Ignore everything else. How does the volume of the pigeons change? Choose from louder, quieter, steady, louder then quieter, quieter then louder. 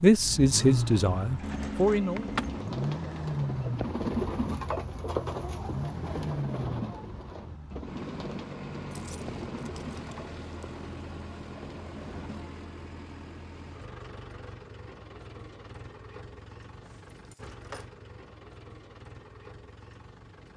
louder then quieter.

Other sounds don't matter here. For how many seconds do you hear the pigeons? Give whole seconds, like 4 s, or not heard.
11 s.